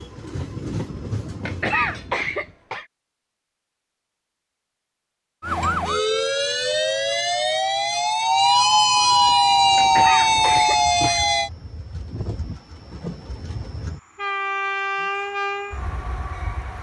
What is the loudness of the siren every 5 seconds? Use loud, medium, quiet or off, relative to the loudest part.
off, loud, loud, off.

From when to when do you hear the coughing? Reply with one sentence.
The coughing can be heard from 1.4 to 2.9 s and from 9.8 to 11.2 s.